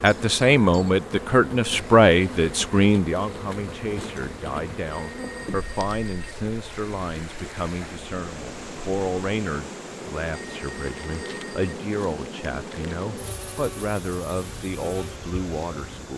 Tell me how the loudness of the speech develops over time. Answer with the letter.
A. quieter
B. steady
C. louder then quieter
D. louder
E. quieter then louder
A.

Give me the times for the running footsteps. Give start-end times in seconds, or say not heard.
not heard.